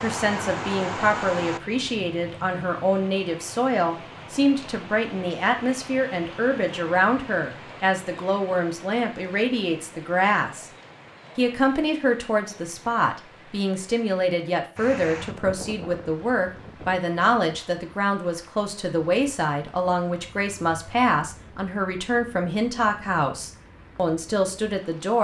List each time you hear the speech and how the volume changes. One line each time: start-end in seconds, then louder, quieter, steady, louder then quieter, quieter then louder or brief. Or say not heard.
0.0-10.7 steady
11.3-25.1 steady.